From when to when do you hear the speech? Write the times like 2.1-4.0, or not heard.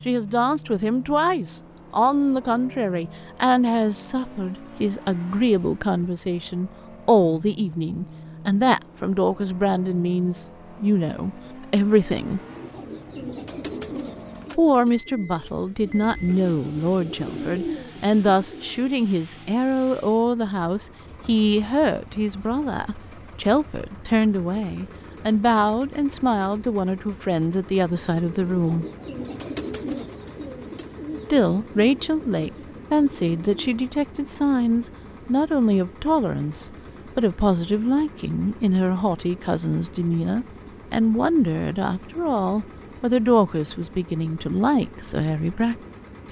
0.1-12.4, 14.6-28.9, 31.3-46.2.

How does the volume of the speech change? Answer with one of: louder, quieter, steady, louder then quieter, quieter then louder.
steady.